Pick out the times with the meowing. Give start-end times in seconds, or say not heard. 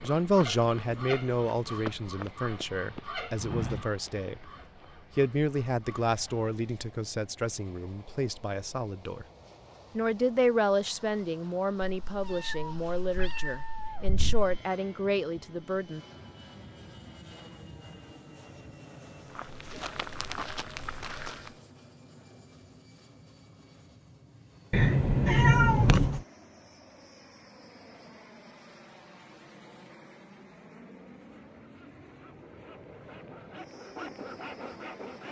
11.8-14.5, 24.7-26.2.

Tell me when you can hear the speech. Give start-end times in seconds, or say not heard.
0.0-4.5, 5.2-9.2, 9.9-16.0.